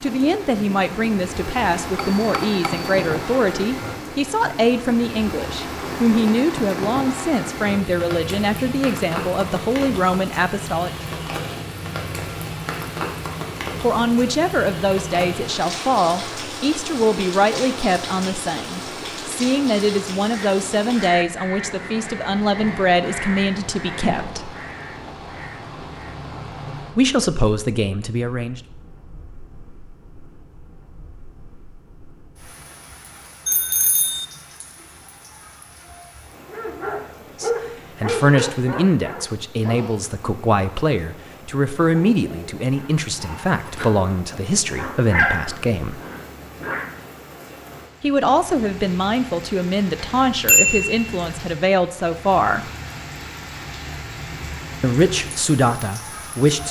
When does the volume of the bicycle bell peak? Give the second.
51 s.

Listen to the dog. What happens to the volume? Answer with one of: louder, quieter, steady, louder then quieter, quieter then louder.
quieter then louder.